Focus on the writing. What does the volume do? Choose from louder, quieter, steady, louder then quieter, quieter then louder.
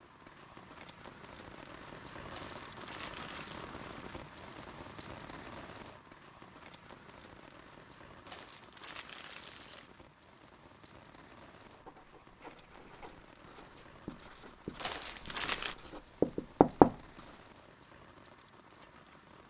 louder.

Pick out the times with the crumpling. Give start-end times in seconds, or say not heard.
2.3-3.7, 8.2-9.9, 14.8-15.8.